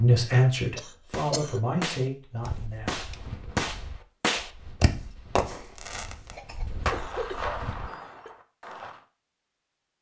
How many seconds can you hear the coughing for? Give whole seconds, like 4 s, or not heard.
3 s.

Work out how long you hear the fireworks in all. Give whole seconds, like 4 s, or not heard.
8 s.